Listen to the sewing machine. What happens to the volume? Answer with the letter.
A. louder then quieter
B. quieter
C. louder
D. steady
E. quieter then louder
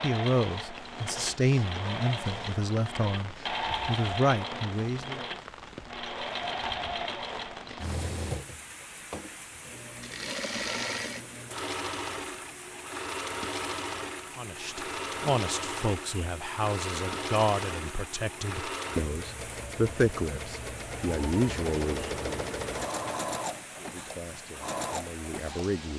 D.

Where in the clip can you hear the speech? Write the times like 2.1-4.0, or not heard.
0.0-5.2, 14.3-22.5, 23.8-25.9.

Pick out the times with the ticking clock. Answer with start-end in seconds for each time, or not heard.
not heard.